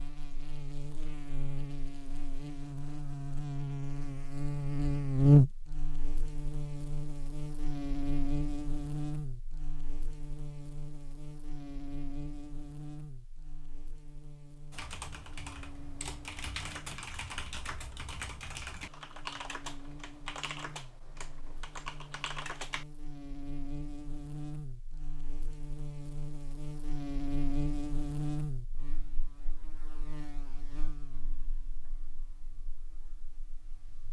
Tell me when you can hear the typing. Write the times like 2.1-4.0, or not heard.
14.7-22.9.